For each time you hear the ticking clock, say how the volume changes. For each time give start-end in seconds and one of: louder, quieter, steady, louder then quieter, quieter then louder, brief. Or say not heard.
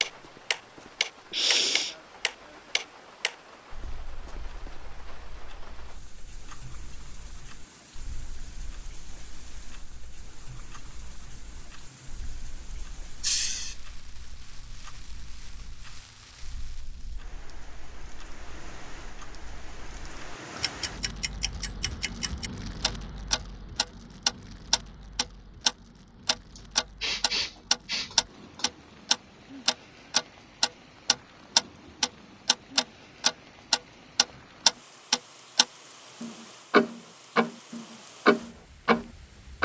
0.0-39.6 quieter then louder.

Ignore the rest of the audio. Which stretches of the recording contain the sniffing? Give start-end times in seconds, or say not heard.
1.3-1.9, 13.2-13.8, 26.6-28.6.